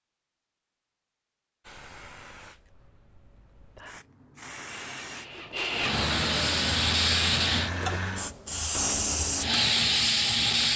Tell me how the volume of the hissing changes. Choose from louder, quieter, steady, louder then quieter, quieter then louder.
louder.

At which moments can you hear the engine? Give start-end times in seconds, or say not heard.
4.5-8.3.